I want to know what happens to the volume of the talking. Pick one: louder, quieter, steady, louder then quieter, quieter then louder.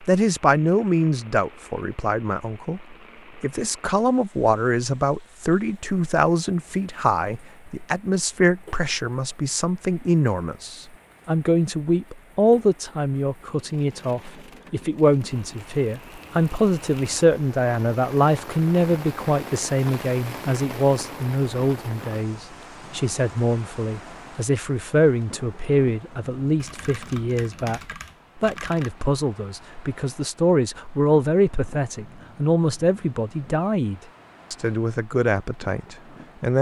steady.